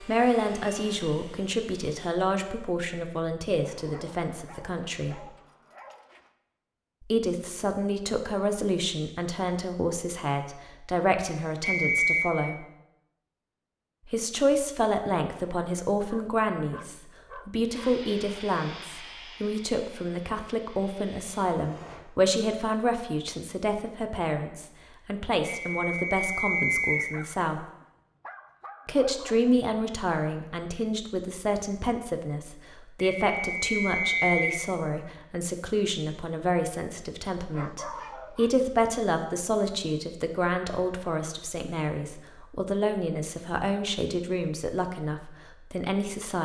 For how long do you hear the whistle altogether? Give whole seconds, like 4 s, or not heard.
4 s.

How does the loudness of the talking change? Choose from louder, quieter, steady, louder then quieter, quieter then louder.
steady.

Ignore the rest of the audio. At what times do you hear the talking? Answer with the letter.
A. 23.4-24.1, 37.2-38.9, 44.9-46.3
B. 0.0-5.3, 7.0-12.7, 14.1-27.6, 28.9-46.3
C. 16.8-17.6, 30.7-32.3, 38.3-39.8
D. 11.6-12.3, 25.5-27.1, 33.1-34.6
B.